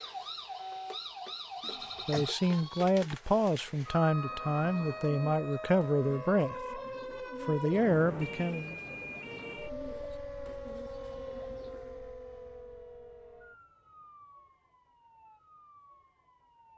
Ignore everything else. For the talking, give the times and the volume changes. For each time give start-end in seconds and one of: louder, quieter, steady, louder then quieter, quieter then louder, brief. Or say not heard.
1.7-6.8 steady
7.4-8.8 brief.